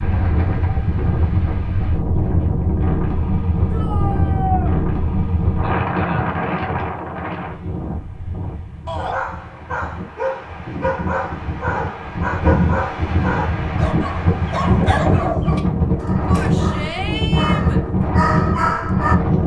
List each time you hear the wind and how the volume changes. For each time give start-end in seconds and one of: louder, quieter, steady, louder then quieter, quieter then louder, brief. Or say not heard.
0.0-19.4 quieter then louder.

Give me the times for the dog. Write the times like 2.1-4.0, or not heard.
8.9-19.1.